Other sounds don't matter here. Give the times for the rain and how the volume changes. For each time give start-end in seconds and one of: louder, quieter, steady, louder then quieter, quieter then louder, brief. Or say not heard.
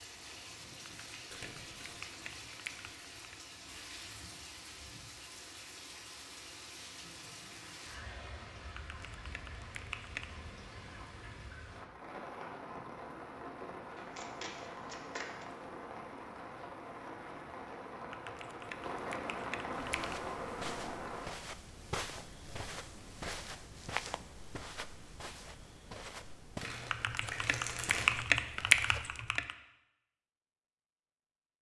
0.0-21.3 louder.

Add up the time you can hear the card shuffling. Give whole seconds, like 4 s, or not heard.
4 s.